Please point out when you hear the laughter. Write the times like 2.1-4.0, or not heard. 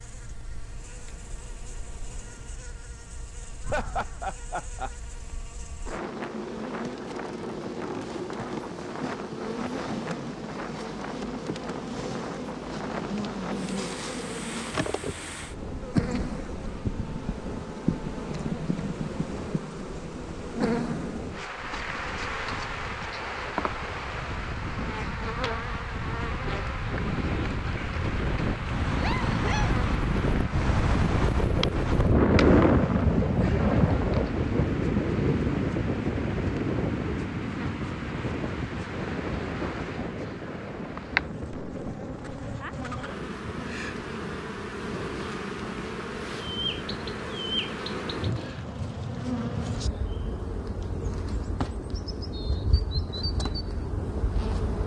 3.6-4.9, 28.9-29.8, 42.9-43.4.